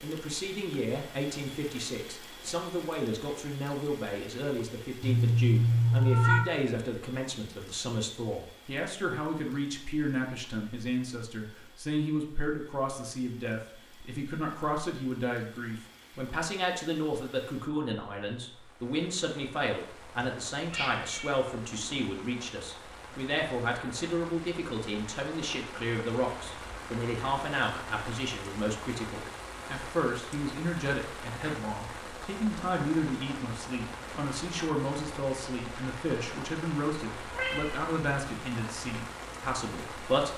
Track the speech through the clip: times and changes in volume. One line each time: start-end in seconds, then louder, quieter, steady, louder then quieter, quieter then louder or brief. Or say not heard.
0.0-40.3 steady.